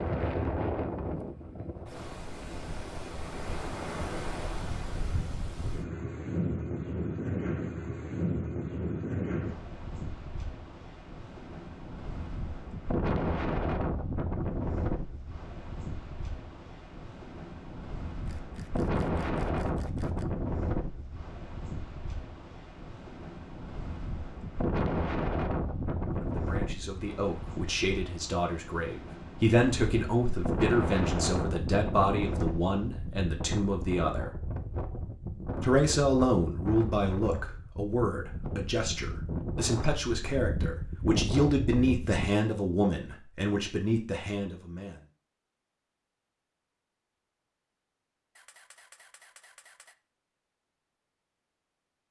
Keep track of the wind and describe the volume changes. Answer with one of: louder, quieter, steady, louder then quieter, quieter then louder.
steady.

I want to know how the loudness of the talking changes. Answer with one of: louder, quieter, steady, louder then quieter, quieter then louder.
steady.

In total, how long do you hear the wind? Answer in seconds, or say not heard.
42 s.